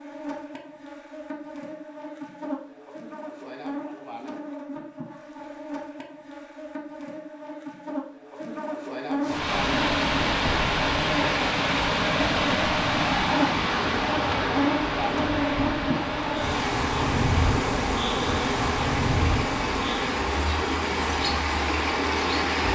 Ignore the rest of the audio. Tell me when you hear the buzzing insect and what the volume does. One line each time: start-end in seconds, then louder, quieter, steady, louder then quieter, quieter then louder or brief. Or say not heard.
0.0-22.7 louder.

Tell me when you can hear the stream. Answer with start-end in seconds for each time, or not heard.
9.2-22.7.